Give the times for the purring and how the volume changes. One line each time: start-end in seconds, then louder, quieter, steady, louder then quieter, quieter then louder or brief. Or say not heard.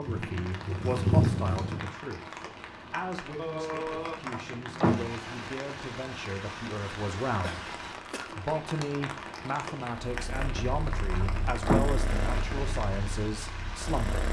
0.0-1.9 brief
10.1-14.2 louder then quieter.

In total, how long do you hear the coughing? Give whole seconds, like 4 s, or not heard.
2 s.